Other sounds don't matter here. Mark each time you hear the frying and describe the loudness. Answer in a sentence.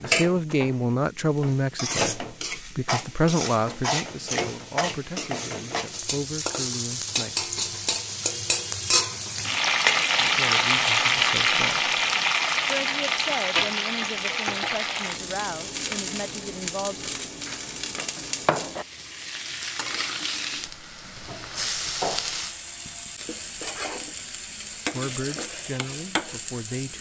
The frying can be heard from 0.0 to 26.9 s, getting louder then quieter.